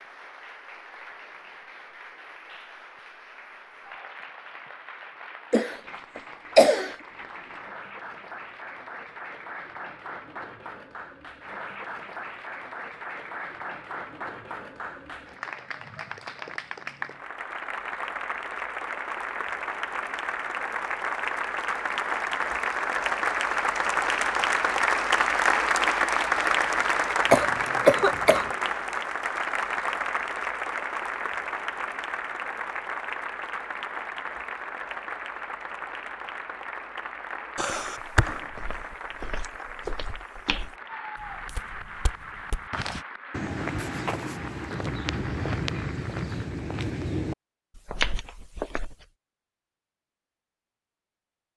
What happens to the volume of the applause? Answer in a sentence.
The loudness of the applause goes up, then down.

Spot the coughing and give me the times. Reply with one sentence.
The coughing can be heard from 5.5 to 7.0 s, from 27.3 to 28.4 s and from 37.5 to 38.4 s.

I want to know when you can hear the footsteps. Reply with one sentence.
The footsteps can be heard from 38.5 to 49.0 s.